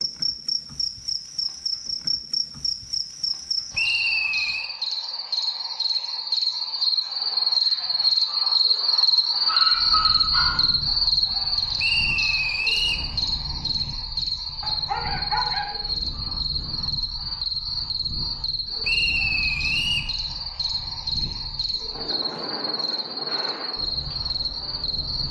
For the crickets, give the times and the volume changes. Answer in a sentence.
You can hear the crickets from 0.0 to 25.2 s, getting louder then quieter.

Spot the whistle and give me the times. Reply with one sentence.
You can hear the whistle from 3.7 to 4.7 s, from 11.8 to 13.1 s and from 18.8 to 20.1 s.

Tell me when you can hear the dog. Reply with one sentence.
The dog can be heard from 9.4 to 10.8 s and from 14.6 to 15.7 s.